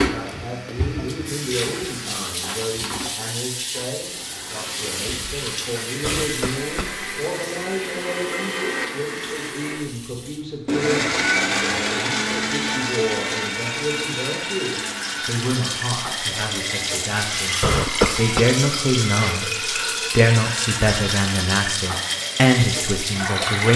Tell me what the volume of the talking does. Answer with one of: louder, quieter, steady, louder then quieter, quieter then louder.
louder.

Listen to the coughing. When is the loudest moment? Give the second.
18 s.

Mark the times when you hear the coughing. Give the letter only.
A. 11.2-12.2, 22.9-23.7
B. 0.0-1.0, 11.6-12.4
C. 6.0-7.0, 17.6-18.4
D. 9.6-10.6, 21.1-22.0
C.